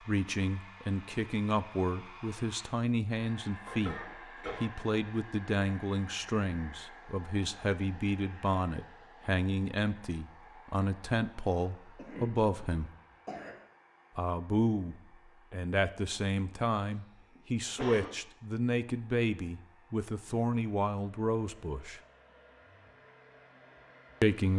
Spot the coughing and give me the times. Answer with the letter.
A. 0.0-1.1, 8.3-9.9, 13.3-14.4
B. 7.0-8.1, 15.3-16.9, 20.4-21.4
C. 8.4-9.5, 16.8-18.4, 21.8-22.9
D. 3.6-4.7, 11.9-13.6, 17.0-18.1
D.